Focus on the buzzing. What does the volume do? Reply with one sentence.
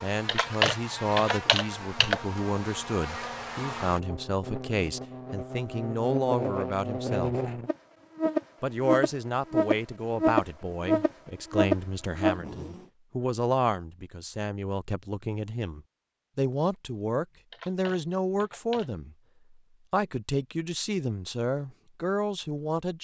The volume of the buzzing goes up.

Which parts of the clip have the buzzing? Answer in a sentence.
You can hear the buzzing from 0.0 to 12.8 s.